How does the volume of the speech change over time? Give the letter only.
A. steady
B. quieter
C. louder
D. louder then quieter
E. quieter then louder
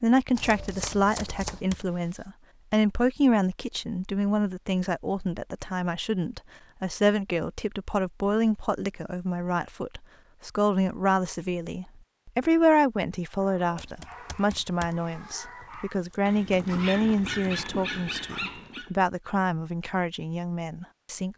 A.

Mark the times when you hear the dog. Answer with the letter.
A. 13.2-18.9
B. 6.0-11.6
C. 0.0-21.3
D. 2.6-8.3
A.